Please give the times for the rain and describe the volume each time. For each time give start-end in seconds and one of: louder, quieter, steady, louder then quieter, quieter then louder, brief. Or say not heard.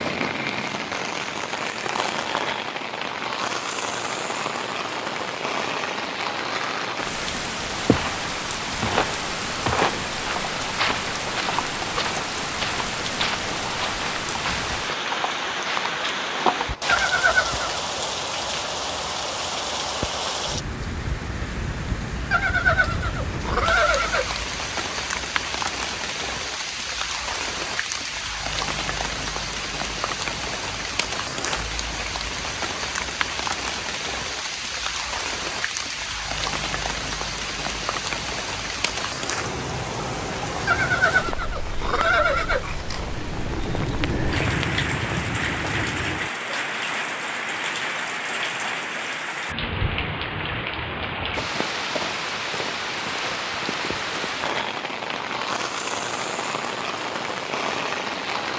0.0-58.5 steady.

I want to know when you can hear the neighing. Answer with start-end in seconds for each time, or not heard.
16.9-17.6, 22.3-24.4, 40.6-43.0.